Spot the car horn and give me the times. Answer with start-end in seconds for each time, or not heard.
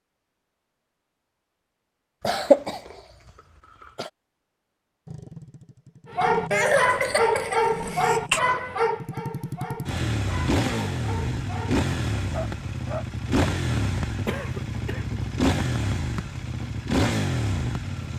not heard.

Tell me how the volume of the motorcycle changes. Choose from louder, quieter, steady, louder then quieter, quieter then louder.
louder.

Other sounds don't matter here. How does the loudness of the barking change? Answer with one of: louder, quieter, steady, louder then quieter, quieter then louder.
quieter.